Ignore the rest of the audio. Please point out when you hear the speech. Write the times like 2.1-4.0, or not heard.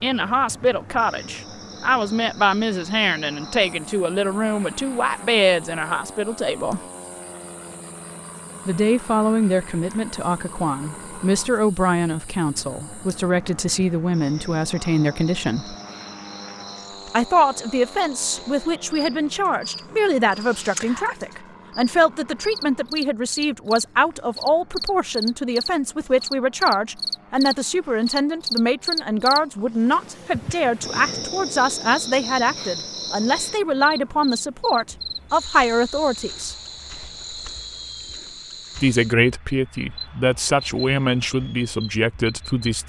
0.0-6.8, 8.7-15.8, 17.1-36.5, 38.8-42.8.